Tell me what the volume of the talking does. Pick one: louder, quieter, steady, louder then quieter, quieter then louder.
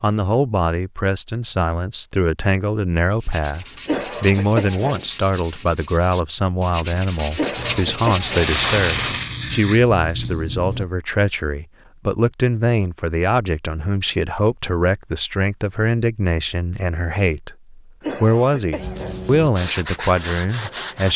steady.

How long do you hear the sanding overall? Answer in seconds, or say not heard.
8 s.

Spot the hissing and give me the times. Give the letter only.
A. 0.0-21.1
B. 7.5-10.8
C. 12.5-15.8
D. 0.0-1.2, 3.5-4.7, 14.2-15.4
B.